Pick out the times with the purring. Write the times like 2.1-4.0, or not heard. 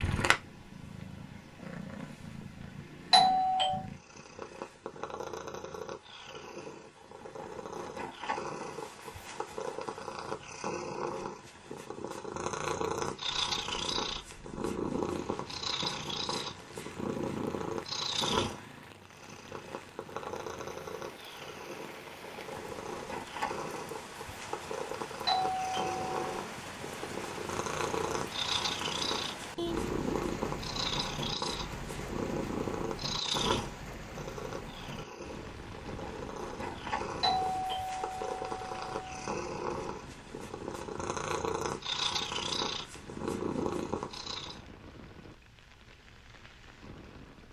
0.0-44.6.